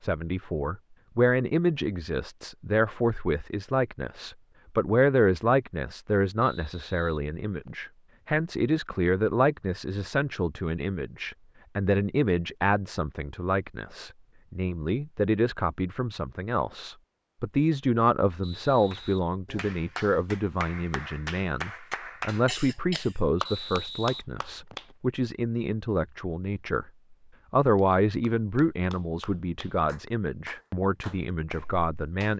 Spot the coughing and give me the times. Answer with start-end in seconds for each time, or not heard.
22.4-23.2.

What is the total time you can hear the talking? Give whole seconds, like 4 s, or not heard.
32 s.